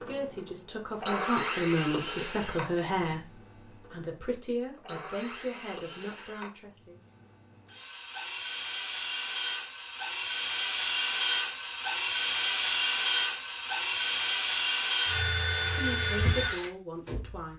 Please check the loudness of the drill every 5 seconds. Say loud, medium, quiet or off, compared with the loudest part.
medium, medium, loud, loud.